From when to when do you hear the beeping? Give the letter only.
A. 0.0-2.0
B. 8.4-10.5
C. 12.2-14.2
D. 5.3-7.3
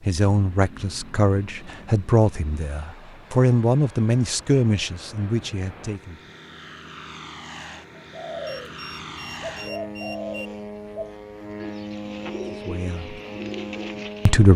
B.